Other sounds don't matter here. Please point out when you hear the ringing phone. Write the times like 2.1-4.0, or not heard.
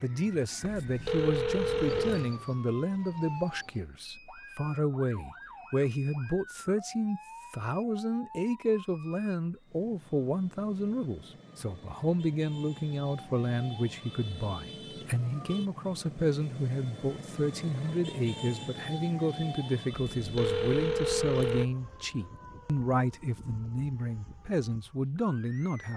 0.6-2.3, 19.9-21.7.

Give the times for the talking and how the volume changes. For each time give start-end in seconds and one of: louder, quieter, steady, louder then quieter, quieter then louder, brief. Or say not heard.
0.0-25.9 steady.